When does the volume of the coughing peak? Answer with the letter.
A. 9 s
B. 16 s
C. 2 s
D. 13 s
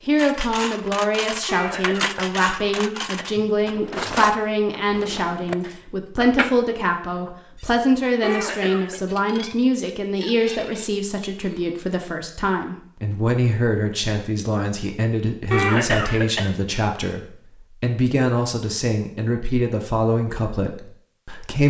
B.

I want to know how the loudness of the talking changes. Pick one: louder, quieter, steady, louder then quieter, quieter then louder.
steady.